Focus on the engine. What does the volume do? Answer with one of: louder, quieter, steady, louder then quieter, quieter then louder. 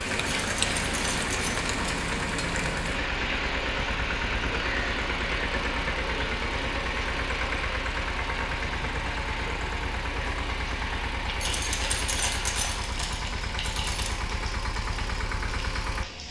steady.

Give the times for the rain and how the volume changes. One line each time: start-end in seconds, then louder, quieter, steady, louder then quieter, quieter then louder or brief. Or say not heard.
0.0-16.2 quieter.